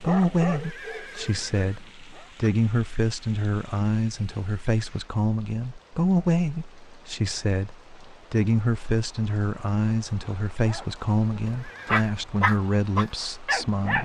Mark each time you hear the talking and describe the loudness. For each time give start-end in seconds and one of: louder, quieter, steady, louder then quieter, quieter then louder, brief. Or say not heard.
0.0-14.0 steady.